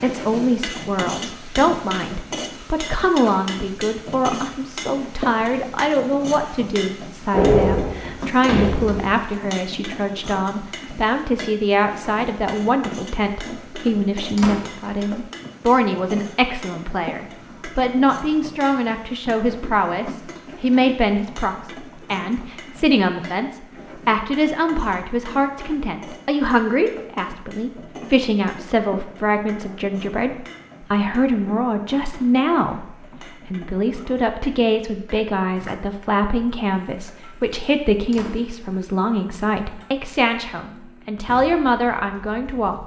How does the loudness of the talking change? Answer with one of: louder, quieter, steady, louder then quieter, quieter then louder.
steady.